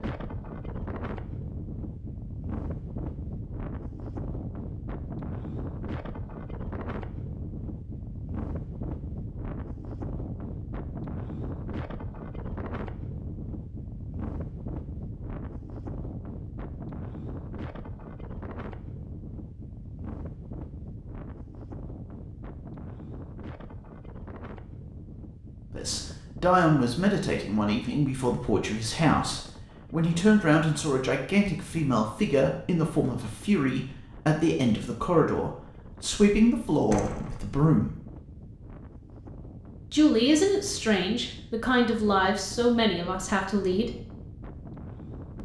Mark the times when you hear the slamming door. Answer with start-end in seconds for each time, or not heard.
36.9-37.4.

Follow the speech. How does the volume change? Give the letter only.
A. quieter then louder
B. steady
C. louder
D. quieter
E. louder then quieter
B.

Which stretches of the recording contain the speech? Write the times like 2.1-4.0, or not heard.
25.7-37.9, 39.9-43.9.